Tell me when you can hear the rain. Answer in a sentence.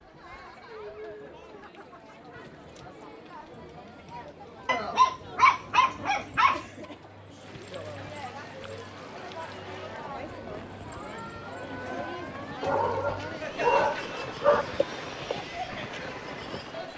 The rain can be heard from 7.4 to 16.9 s.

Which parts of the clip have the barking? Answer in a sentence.
The barking can be heard from 4.7 to 6.7 s and from 12.6 to 14.7 s.